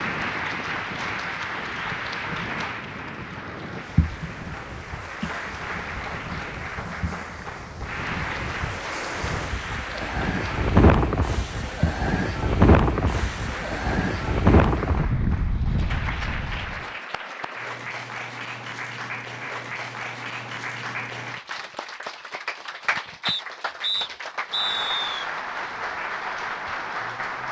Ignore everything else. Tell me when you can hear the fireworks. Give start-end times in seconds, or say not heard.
not heard.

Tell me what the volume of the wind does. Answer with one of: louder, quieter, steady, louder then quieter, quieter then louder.
louder.